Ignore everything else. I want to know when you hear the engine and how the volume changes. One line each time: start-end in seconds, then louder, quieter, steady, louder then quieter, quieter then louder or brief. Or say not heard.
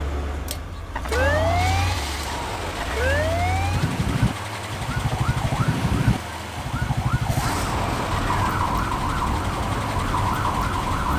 0.0-11.1 steady.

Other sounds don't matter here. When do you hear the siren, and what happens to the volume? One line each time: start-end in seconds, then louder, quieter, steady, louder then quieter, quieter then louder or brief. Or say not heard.
0.0-11.1 steady.